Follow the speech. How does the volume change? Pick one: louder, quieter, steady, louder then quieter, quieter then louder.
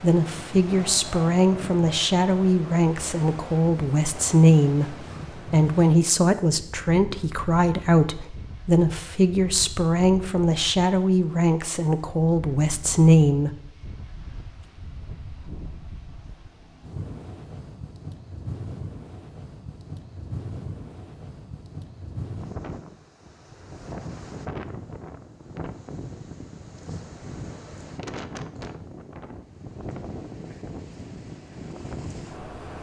steady.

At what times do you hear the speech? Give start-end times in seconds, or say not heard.
0.0-13.5.